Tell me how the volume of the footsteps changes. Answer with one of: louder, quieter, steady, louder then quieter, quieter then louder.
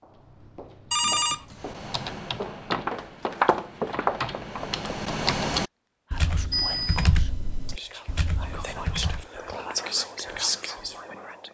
louder.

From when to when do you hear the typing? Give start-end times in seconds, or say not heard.
1.6-9.2.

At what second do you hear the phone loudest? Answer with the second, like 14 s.
1 s.